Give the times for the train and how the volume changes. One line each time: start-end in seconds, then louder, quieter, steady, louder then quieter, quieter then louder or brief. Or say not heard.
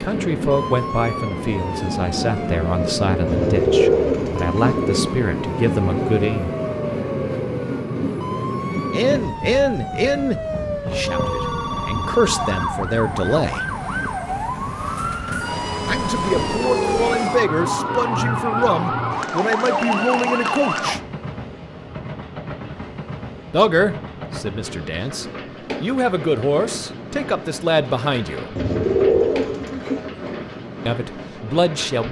0.0-32.0 quieter.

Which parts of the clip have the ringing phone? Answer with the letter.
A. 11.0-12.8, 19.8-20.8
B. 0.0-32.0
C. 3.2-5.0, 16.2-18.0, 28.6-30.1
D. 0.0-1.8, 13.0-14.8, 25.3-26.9
A.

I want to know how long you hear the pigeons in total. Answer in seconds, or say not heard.
5 s.